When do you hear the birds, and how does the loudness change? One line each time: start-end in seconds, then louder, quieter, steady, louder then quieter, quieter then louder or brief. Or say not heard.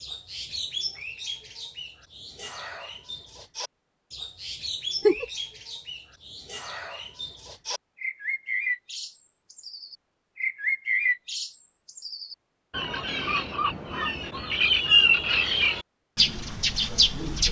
0.0-17.4 louder.